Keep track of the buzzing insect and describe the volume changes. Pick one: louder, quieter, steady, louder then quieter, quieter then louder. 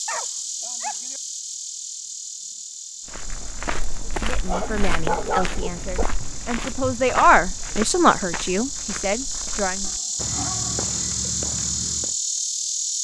quieter then louder.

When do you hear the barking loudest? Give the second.
5 s.